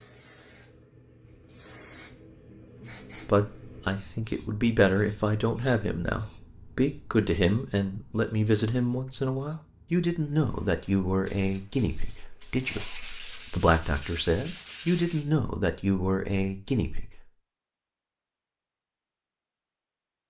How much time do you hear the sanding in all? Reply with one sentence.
The sanding can be heard for 3 seconds in total.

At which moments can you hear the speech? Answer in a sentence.
The speech can be heard from 2.9 to 17.2 s.